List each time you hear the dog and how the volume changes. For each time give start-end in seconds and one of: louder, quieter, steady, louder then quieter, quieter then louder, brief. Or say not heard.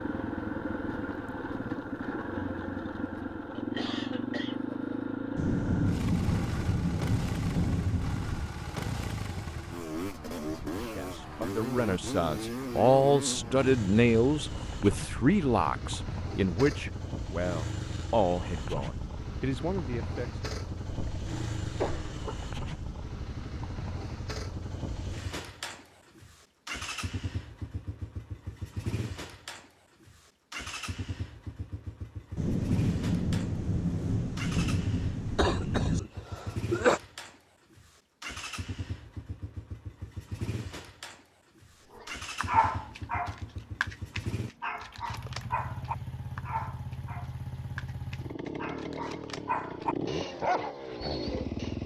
42.0-51.7 quieter then louder.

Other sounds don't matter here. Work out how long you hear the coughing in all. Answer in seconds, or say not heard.
4 s.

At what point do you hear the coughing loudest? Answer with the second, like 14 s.
37 s.